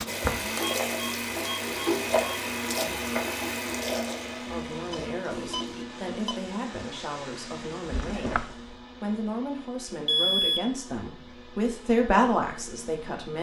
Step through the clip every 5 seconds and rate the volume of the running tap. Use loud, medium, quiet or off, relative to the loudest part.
loud, quiet, off.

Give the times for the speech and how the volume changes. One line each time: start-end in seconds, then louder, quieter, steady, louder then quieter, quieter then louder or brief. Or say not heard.
4.3-13.3 louder.